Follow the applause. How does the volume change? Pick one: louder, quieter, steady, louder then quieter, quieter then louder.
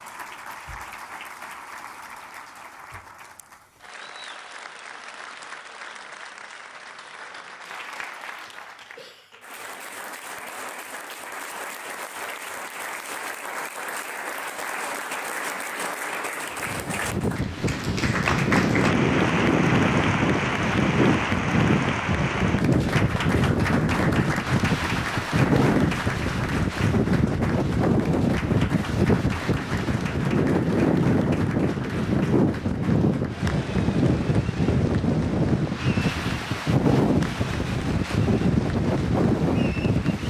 louder then quieter.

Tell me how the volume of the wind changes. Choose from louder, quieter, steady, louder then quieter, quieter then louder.
steady.